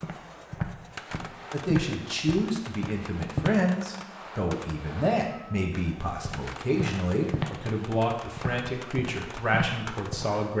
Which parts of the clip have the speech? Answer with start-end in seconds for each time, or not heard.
1.5-10.5.